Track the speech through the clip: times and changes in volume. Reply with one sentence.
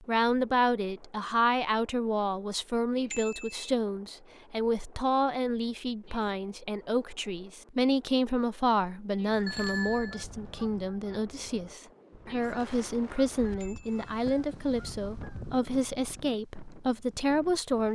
You can hear the speech from 0.0 to 17.8 s, at a steady volume.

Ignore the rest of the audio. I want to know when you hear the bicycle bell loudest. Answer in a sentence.
The loudest moment of the bicycle bell is at 10 seconds.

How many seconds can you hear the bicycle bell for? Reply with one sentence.
You can hear the bicycle bell for 2 seconds altogether.